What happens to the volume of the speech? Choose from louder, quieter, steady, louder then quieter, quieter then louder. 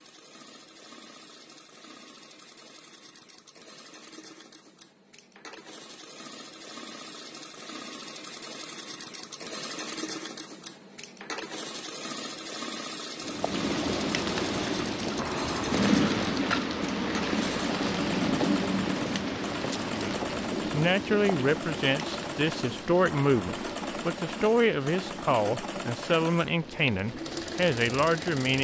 steady.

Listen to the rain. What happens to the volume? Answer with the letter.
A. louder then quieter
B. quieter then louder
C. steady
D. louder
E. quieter
E.